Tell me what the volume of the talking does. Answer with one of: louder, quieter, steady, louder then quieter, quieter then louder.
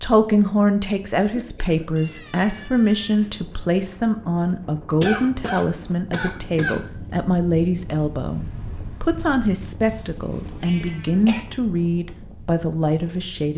steady.